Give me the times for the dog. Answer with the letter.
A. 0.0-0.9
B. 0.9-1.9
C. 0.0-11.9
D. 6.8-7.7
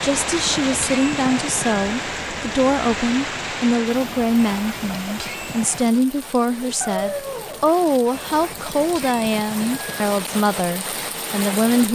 D.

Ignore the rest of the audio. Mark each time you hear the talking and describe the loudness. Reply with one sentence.
You can hear the talking from 0.0 to 11.9 s, at a steady volume.